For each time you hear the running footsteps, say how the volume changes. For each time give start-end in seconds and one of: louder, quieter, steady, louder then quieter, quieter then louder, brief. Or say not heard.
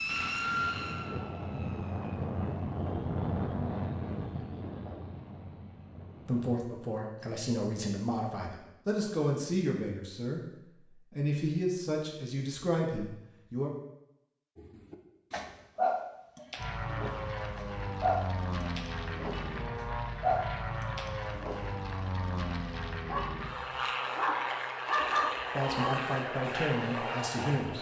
not heard.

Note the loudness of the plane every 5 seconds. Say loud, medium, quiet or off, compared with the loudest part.
loud, quiet, off, loud, loud, loud.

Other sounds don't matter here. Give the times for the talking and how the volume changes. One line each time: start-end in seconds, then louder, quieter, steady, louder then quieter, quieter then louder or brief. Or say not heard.
6.2-13.7 steady
25.6-27.7 brief.